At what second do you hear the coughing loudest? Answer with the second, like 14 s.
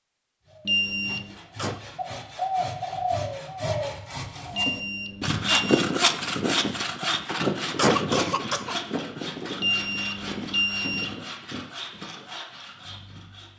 8 s.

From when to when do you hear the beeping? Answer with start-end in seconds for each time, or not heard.
0.7-1.4, 4.5-5.8, 9.6-11.2.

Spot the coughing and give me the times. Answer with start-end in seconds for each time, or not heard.
1.1-1.8, 7.2-8.8.